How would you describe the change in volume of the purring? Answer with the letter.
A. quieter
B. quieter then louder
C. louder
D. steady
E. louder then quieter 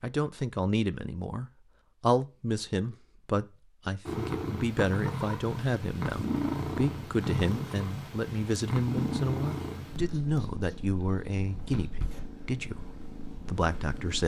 A.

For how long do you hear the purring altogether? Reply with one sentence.
The purring can be heard for 10 seconds in total.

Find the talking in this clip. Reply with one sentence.
You can hear the talking from 0.0 to 14.2 s.